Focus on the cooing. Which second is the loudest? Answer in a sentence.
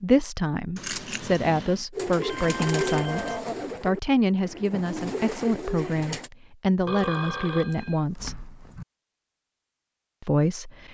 The volume of the cooing peaks at 3 seconds.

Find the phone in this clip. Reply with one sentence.
You can hear the phone from 2.2 to 3.4 s and from 6.8 to 8.1 s.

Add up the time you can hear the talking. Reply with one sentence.
You can hear the talking for 9 seconds altogether.